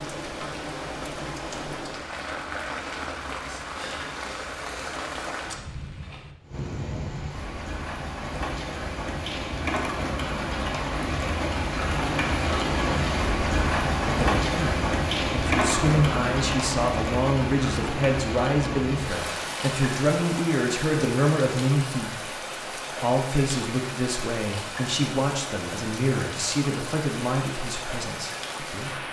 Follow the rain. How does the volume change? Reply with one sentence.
The loudness of the rain goes up, then down.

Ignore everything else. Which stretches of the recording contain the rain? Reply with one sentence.
You can hear the rain from 0.0 to 29.0 s.